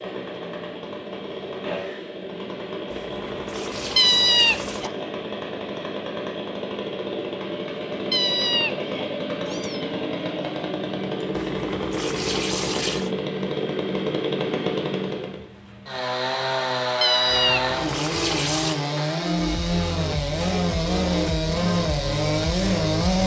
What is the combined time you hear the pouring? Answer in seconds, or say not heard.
5 s.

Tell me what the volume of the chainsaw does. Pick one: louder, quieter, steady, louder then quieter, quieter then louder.
louder.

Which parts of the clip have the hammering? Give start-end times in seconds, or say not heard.
not heard.